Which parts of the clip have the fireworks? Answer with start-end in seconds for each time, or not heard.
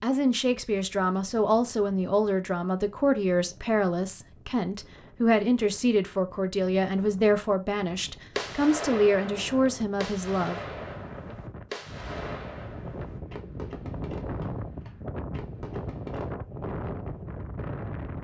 8.3-16.4.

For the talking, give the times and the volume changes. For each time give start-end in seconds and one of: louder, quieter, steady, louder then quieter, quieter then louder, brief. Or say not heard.
0.0-10.8 steady.